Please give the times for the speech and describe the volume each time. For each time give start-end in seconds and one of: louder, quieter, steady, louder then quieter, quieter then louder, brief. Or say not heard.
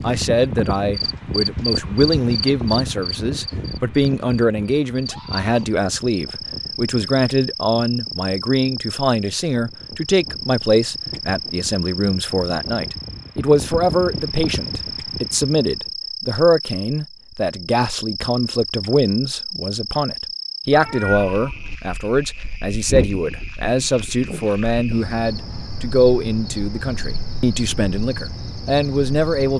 0.0-29.5 steady.